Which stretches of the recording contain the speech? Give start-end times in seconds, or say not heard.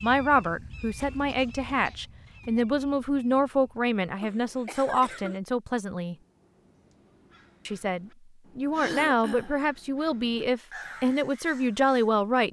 0.0-6.2, 7.7-12.4.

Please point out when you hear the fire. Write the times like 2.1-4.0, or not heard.
not heard.